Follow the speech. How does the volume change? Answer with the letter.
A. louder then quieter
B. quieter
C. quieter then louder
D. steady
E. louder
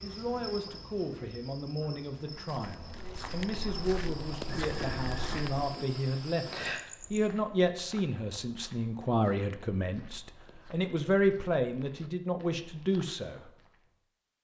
E.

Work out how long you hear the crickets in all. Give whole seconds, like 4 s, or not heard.
7 s.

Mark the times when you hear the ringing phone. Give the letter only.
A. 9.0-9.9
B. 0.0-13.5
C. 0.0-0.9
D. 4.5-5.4
D.